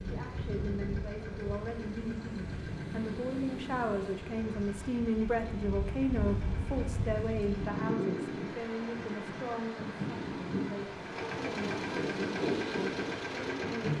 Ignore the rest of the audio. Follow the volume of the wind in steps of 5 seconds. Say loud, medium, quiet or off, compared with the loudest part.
medium, loud, loud.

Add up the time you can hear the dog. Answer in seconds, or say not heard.
not heard.